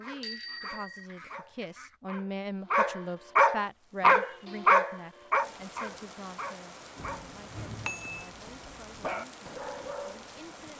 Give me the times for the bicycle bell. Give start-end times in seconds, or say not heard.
0.2-1.1, 7.0-8.3.